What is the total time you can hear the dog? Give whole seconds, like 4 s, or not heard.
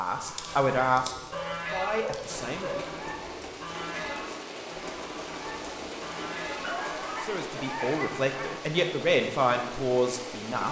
4 s.